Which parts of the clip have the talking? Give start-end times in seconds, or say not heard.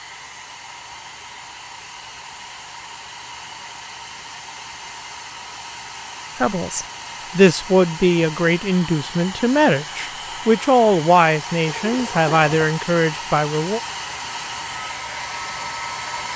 6.4-13.8.